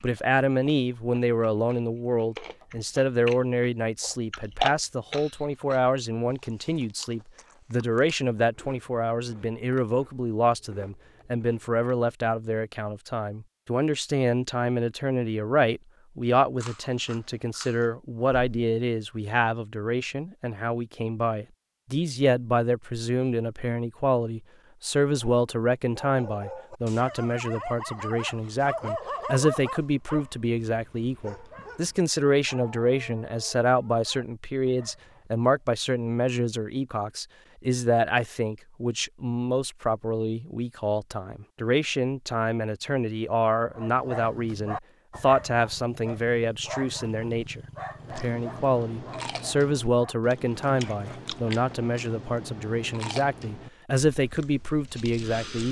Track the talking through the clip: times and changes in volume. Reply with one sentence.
You can hear the talking from 0.0 to 55.6 s, at a steady volume.